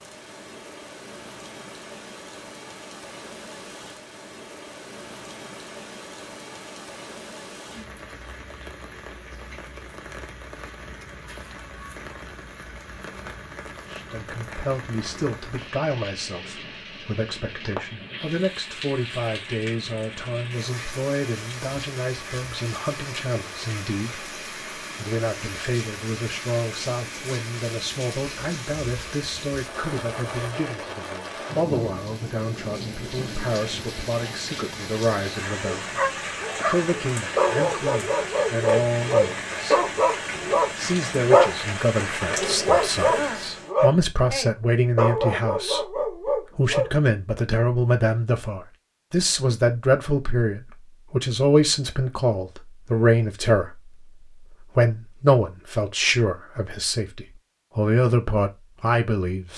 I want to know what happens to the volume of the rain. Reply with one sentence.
The loudness of the rain goes up.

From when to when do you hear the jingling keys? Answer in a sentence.
The jingling keys can't be heard in this clip.